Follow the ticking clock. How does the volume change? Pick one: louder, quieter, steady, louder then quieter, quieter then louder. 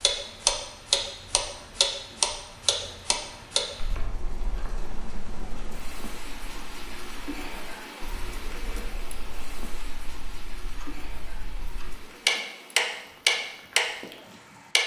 quieter then louder.